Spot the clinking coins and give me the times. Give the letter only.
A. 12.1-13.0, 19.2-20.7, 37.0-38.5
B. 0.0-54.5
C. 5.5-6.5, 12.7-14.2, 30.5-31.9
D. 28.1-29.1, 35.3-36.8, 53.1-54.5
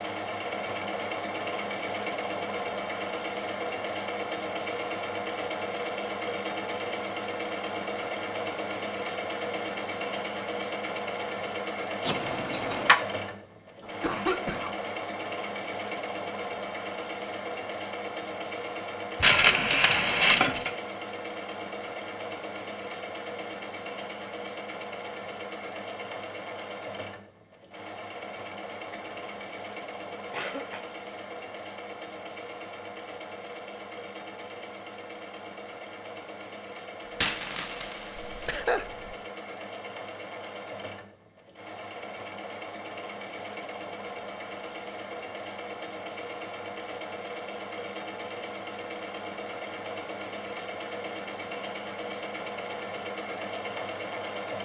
A.